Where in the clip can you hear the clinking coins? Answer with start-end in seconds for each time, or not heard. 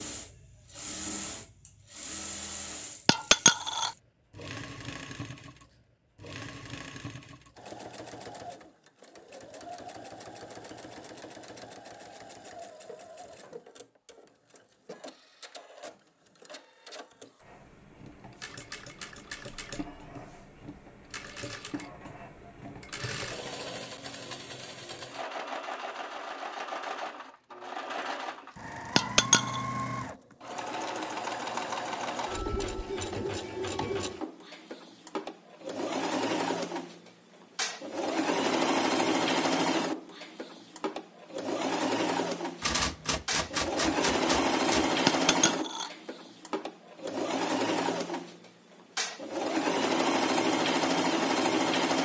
3.0-3.9, 28.9-29.6, 45.0-45.9.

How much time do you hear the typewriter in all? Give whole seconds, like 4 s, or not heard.
2 s.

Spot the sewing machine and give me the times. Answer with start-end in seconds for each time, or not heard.
0.0-52.0.